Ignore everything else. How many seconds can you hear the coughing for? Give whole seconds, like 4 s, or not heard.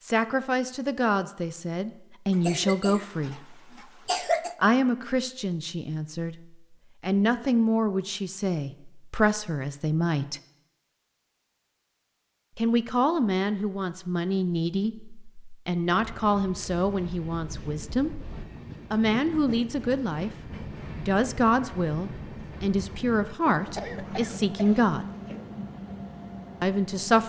4 s.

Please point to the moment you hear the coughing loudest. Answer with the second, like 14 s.
4 s.